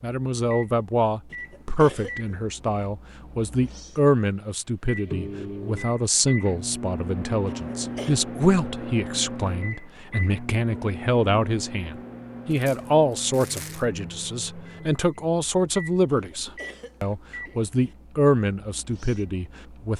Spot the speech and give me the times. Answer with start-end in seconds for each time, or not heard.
0.0-19.9.